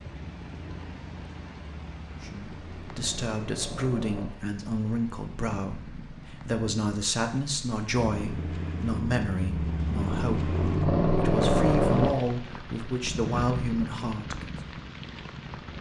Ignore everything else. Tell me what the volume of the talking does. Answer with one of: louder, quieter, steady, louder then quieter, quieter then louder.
steady.